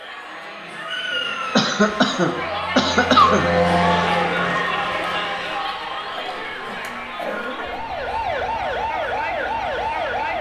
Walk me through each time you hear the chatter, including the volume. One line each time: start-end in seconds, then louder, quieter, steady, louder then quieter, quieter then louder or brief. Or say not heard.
0.0-10.3 louder then quieter.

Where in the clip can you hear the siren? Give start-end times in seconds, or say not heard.
0.0-1.6, 6.6-10.3.